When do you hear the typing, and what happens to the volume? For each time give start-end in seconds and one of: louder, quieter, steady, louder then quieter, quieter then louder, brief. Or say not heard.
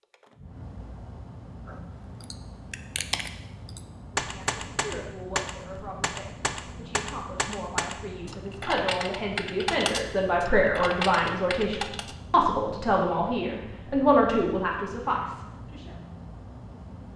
1.6-12.2 steady.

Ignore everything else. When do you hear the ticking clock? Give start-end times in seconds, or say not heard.
not heard.